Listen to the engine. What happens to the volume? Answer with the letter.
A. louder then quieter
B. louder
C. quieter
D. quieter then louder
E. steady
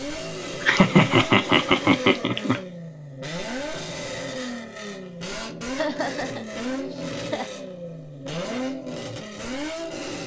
E.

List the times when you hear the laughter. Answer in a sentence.
The laughter can be heard from 0.6 to 2.6 s and from 5.7 to 7.5 s.